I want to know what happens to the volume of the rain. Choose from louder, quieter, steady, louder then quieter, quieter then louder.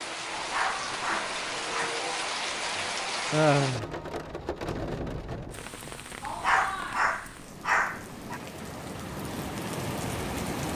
quieter then louder.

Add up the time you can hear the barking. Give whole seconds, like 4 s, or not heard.
4 s.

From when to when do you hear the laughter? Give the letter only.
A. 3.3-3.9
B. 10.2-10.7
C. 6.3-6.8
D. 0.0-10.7
A.